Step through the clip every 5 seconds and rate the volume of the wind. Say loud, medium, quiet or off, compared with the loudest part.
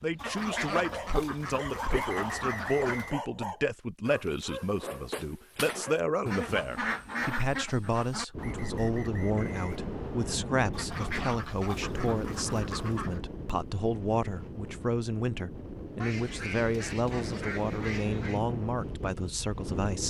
off, loud, loud, loud.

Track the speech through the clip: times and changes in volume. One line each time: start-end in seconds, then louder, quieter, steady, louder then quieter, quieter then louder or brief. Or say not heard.
0.0-20.0 steady.